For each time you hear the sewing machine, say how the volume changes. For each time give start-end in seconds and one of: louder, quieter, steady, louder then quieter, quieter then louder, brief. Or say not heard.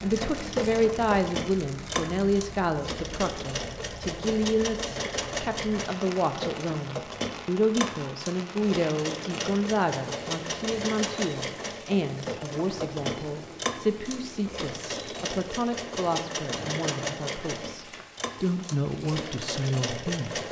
0.0-20.4 steady.